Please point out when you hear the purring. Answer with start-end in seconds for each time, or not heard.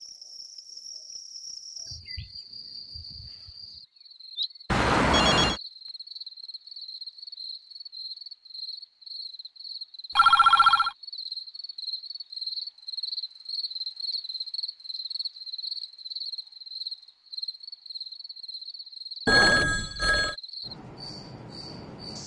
not heard.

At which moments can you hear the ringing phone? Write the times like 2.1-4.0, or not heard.
4.7-5.6, 10.2-10.9, 19.2-20.4.